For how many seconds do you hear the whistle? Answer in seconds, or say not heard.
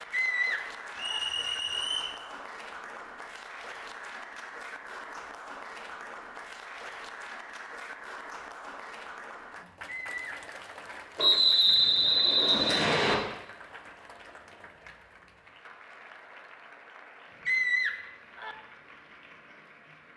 3 s.